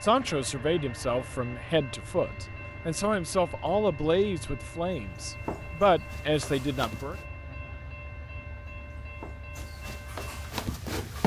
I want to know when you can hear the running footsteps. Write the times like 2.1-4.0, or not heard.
5.1-7.2, 8.8-11.2.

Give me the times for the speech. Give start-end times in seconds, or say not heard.
0.0-7.2.